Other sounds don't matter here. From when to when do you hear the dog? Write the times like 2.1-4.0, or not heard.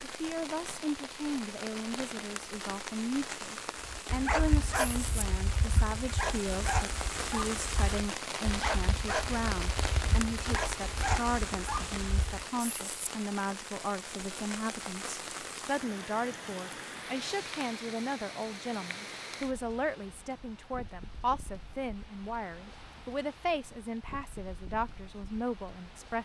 4.0-12.4.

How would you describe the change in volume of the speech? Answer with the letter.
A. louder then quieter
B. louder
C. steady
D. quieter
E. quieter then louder
C.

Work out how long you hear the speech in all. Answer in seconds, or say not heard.
26 s.